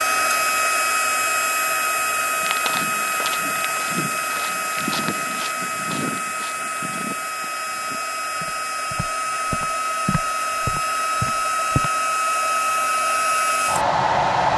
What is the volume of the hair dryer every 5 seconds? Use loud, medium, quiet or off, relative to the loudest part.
loud, medium, loud.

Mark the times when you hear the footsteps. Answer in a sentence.
The footsteps can be heard from 2.4 to 11.9 s.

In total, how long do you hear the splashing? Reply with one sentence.
You can't hear the splashing here.